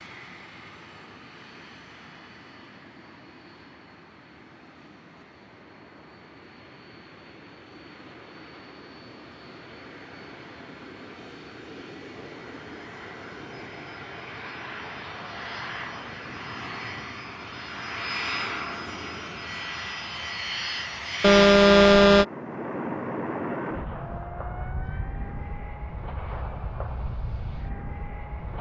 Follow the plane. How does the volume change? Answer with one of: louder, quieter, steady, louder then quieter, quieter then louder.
louder.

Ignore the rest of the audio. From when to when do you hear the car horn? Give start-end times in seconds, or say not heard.
21.2-22.2.